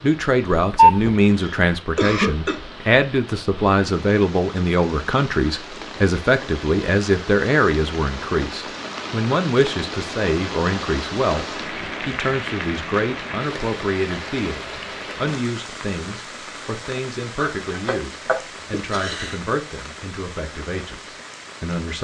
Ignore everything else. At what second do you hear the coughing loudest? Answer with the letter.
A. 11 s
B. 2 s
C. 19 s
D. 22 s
B.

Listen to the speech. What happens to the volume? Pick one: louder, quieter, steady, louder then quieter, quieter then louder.
quieter.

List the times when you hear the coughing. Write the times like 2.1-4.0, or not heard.
1.1-2.6, 17.4-19.4.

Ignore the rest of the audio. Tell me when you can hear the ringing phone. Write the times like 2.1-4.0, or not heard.
0.6-1.1.